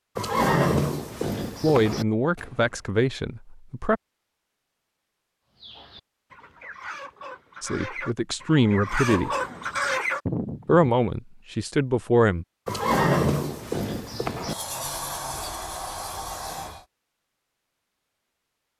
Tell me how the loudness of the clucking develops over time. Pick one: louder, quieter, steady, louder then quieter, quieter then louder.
louder.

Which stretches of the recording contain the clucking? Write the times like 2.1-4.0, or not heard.
5.5-10.8.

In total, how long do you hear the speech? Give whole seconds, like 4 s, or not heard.
6 s.